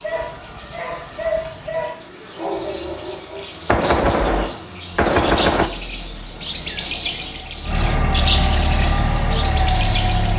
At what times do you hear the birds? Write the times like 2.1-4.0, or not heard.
0.0-10.3.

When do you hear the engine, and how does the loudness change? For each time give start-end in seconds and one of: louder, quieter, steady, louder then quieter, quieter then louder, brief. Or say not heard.
0.0-10.3 louder.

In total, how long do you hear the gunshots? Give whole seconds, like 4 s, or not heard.
2 s.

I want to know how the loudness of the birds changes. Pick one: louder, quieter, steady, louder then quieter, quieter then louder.
louder.